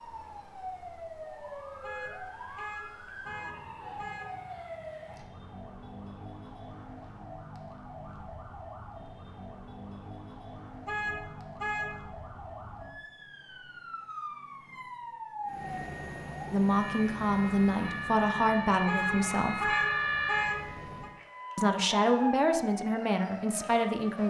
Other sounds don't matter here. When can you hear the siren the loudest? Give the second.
20 s.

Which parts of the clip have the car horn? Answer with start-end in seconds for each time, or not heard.
1.8-4.3, 10.8-11.9, 18.9-21.1.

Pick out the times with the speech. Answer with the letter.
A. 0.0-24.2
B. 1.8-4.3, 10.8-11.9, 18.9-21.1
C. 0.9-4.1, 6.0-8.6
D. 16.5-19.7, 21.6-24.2
D.